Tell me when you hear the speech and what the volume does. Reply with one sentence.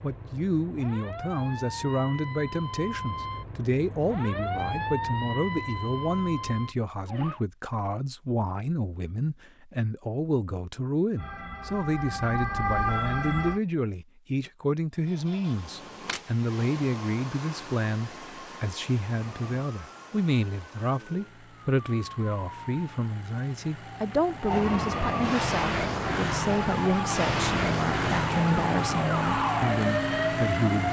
The speech can be heard from 0.0 to 30.8 s, at a steady volume.